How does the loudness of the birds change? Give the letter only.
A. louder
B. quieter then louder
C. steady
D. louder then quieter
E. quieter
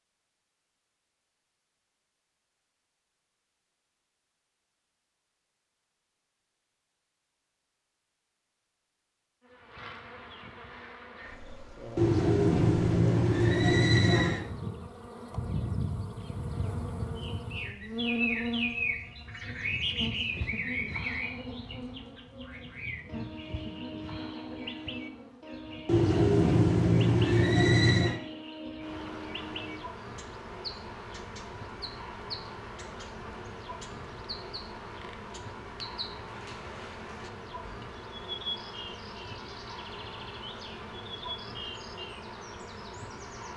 E.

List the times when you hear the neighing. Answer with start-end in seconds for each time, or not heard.
11.9-14.4, 25.9-28.2.